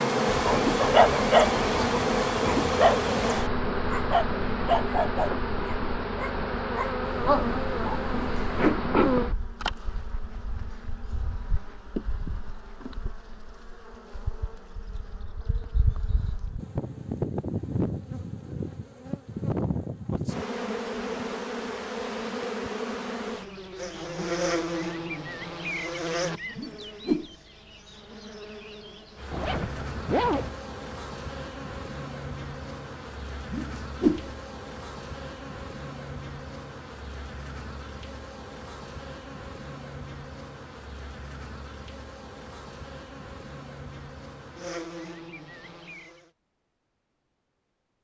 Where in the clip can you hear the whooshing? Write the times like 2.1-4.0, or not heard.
8.1-8.8, 26.6-27.3, 33.5-34.2.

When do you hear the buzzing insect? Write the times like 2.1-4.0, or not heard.
0.0-46.3.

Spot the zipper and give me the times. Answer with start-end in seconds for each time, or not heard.
29.3-30.6.